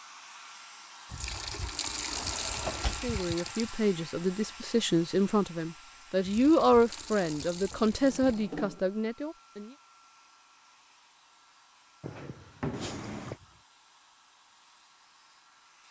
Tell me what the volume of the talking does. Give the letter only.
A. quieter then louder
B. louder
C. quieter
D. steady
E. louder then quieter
E.